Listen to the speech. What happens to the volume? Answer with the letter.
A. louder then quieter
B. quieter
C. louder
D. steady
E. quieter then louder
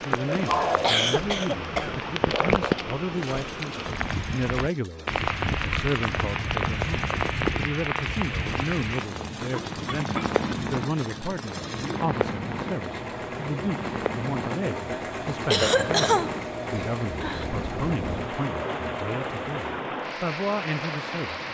D.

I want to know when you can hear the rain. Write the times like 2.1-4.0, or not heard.
0.0-21.5.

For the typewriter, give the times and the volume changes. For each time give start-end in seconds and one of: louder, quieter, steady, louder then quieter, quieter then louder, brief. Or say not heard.
not heard.